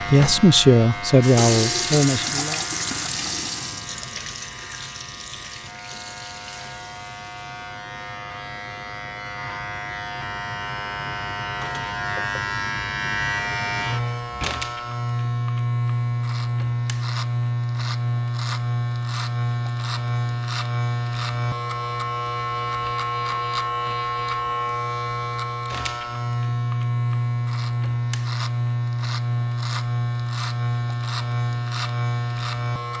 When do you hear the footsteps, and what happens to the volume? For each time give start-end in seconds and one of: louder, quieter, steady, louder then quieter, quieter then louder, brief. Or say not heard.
not heard.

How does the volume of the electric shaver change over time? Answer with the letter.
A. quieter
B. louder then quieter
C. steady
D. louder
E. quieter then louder
D.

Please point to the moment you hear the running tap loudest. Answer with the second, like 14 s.
2 s.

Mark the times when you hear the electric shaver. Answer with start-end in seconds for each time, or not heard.
0.0-32.9.